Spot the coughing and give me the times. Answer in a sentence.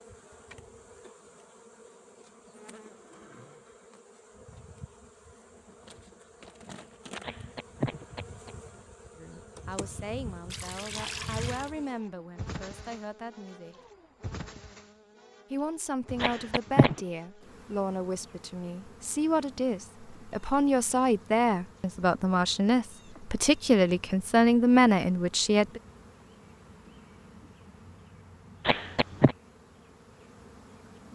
The coughing can be heard from 7.2 to 8.5 s, from 16.2 to 17.0 s and from 28.6 to 29.4 s.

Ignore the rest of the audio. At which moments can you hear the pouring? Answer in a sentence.
You can hear the pouring from 10.5 to 11.7 s.